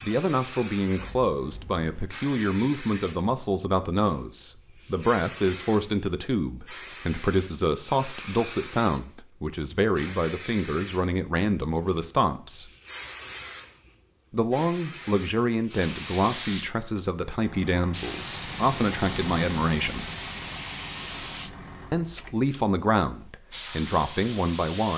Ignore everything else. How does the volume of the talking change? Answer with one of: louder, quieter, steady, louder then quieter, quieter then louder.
steady.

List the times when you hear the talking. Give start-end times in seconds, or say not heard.
0.0-12.7, 14.3-20.1, 21.9-24.9.